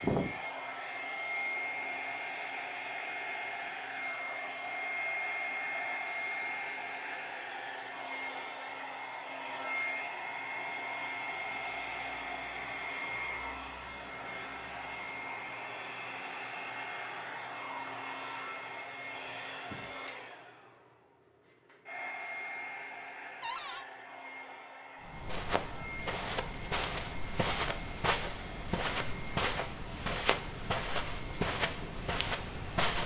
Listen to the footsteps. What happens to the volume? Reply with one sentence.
The volume of the footsteps stays about the same.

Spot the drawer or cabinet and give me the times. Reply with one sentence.
You can hear the drawer or cabinet from 23.4 to 23.9 s.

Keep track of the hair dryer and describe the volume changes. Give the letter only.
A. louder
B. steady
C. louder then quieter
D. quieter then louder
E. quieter
E.